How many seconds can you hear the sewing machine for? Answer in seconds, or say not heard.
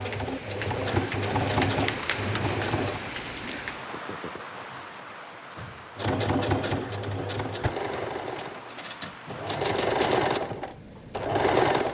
9 s.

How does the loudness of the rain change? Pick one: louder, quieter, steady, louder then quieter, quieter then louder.
quieter.